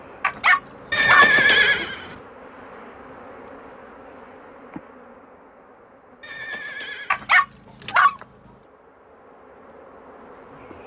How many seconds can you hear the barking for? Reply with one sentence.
You can hear the barking for 3 seconds altogether.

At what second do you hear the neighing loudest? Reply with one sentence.
The loudest moment of the neighing is at 1 second.